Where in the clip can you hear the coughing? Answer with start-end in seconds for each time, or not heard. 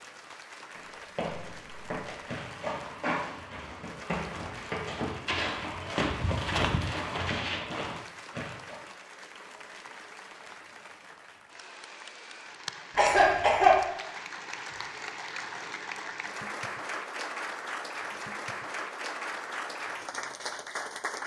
12.9-13.8.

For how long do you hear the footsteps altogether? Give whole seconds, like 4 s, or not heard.
8 s.